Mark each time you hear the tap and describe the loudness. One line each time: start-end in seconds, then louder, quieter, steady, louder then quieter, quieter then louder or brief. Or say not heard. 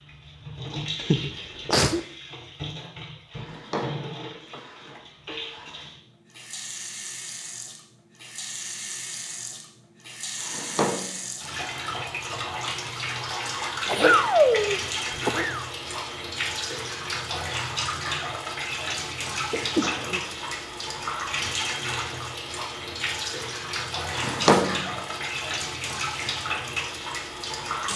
0.0-27.9 louder.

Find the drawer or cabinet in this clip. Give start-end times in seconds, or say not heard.
3.3-5.9, 10.4-11.7, 24.1-24.9.